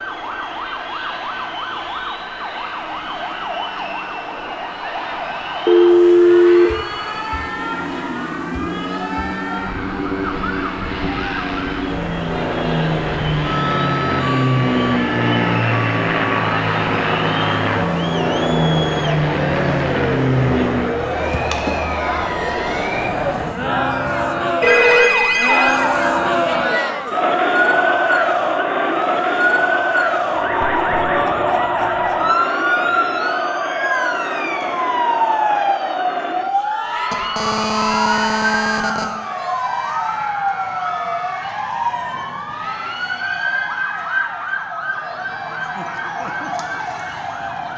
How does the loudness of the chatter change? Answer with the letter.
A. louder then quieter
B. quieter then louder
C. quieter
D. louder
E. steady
A.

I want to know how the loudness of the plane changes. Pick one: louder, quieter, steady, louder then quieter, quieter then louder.
louder.